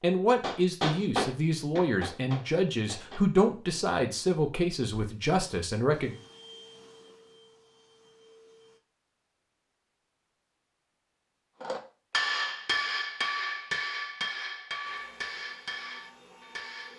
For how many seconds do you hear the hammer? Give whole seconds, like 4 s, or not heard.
9 s.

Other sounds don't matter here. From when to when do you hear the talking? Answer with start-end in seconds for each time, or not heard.
0.0-6.2.